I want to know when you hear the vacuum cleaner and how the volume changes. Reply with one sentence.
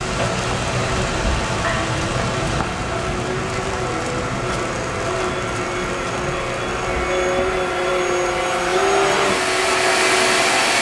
You can hear the vacuum cleaner from 0.0 to 10.7 s, getting louder.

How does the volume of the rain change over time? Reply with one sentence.
The volume of the rain goes down.